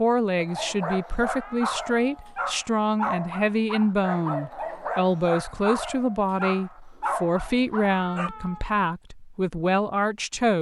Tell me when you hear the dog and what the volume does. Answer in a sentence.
The dog can be heard from 0.3 to 8.3 s, at a steady volume.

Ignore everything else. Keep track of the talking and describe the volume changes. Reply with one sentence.
The volume of the talking stays about the same.